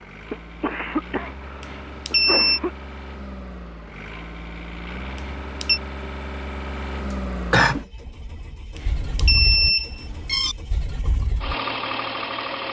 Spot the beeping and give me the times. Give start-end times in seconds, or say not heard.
1.6-2.6, 5.2-5.8, 8.8-10.6.